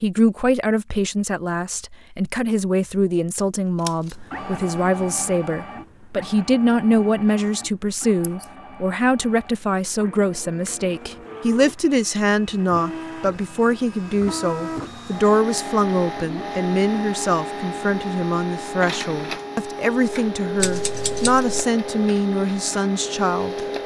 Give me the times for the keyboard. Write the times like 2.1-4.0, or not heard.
not heard.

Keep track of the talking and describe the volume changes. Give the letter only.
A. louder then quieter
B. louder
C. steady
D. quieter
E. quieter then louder
C.